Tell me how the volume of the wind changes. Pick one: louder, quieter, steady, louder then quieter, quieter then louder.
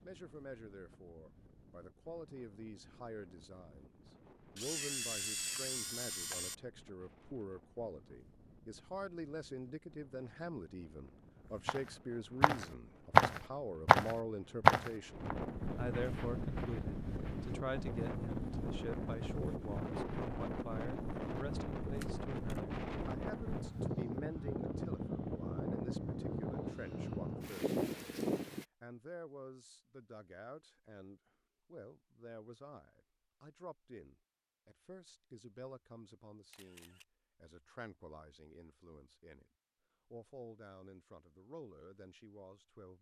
louder.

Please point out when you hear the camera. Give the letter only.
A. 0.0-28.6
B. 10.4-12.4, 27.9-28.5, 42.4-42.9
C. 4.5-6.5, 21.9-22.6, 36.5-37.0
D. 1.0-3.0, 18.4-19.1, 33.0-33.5
C.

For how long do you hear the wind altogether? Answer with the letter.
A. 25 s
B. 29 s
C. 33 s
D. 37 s
B.